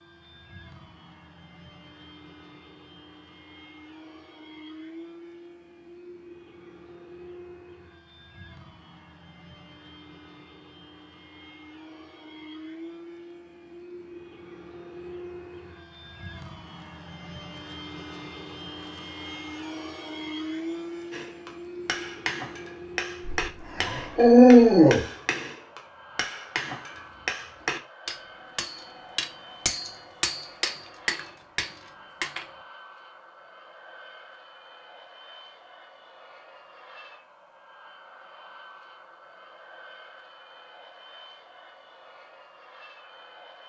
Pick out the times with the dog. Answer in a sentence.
The dog can be heard from 23.2 to 25.1 s.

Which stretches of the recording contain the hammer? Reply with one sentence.
You can hear the hammer from 21.1 to 32.5 s.